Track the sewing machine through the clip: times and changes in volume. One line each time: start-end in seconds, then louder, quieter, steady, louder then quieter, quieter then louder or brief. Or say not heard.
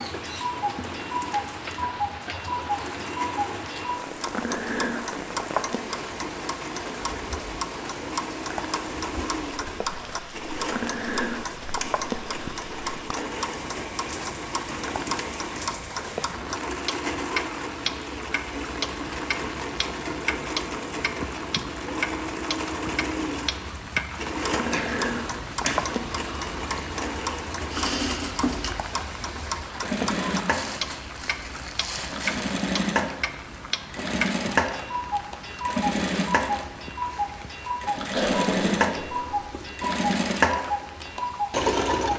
0.0-42.1 louder.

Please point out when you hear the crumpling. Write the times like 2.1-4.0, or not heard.
30.5-32.4.